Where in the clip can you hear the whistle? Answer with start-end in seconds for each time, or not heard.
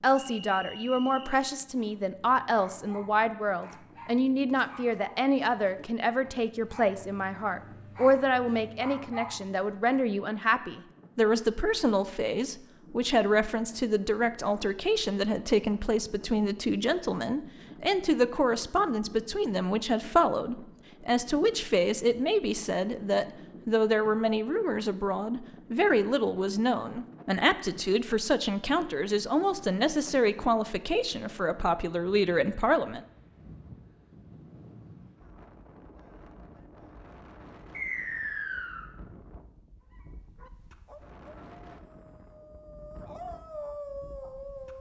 0.1-1.4, 37.7-38.9.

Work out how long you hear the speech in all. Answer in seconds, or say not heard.
33 s.